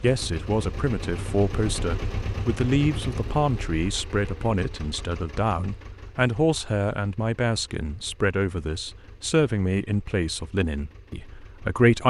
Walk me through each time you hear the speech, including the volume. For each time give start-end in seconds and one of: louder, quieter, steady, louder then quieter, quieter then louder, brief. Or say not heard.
0.0-12.0 steady.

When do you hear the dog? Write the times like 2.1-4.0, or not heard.
not heard.